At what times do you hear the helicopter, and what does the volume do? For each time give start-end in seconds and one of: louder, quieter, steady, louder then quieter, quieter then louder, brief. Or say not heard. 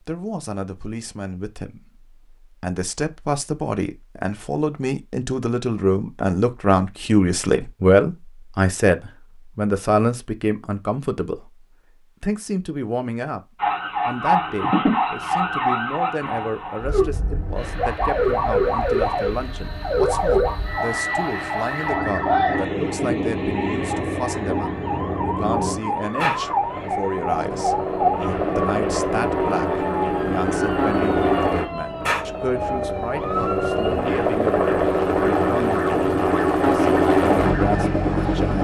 17.6-38.6 louder.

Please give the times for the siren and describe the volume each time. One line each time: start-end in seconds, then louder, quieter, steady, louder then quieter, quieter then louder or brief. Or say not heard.
13.6-38.5 quieter.